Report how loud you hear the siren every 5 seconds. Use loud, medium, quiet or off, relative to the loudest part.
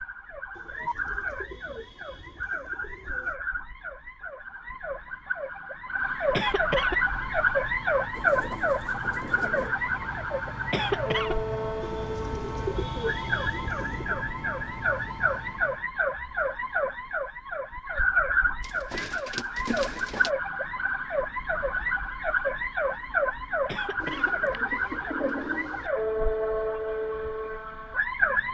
medium, loud, medium, loud, loud, loud.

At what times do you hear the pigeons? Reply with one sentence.
The pigeons can be heard from 0.6 to 3.4 s, from 8.1 to 9.8 s, from 11.8 to 14.2 s, from 18.6 to 20.3 s and from 24.0 to 25.9 s.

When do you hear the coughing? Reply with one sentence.
You can hear the coughing from 6.3 to 7.0 s, from 10.7 to 11.3 s and from 23.6 to 24.4 s.